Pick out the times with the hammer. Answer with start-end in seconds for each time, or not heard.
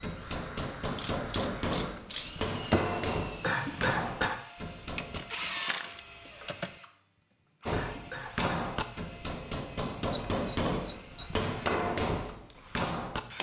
0.0-5.2, 7.7-13.3.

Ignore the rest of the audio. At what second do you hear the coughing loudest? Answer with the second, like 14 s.
4 s.